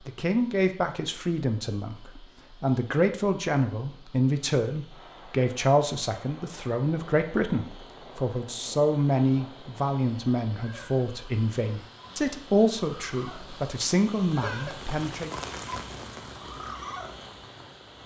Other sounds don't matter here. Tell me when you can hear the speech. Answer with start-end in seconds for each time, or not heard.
0.1-15.3.